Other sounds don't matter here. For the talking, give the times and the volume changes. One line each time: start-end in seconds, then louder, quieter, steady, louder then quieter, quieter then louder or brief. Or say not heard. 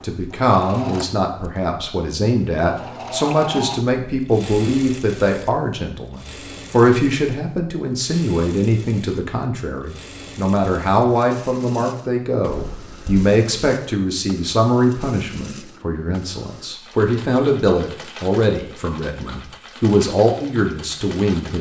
0.0-21.5 steady.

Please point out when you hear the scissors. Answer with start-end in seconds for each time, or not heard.
not heard.